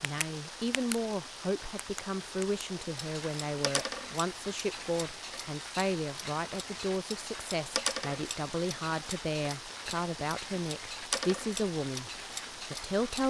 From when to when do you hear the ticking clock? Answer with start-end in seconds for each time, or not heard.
0.0-0.9, 1.8-13.2.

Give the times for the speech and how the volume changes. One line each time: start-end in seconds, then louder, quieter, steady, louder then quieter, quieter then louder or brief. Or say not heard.
0.0-12.1 steady
12.7-13.2 brief.